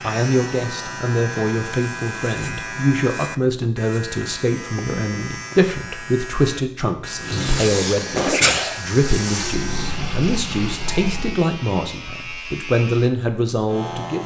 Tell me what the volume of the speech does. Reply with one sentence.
The volume of the speech stays about the same.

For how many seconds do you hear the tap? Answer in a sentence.
You can hear the tap for 4 seconds altogether.